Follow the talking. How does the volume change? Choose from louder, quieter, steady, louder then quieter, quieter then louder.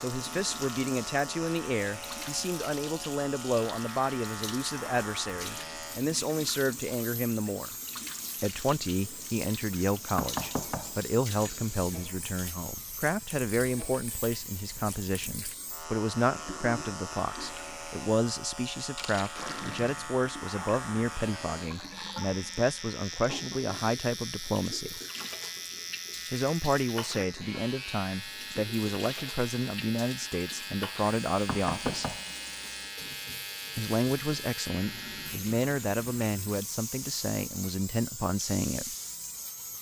steady.